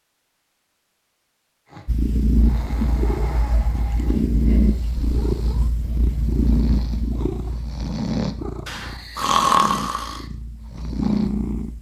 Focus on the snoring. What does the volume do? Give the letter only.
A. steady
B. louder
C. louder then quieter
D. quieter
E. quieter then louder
B.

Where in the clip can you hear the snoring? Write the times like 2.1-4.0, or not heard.
1.6-11.3.